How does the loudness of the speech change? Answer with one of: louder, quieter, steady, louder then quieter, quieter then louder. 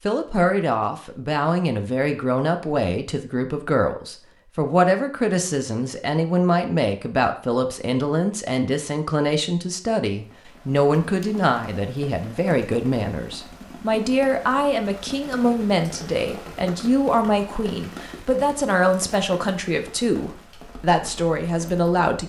steady.